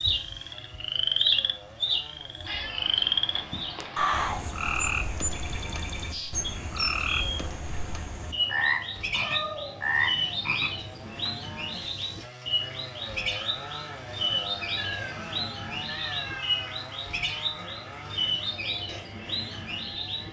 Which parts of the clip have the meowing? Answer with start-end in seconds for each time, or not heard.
2.5-4.0, 9.2-9.9, 14.8-16.8.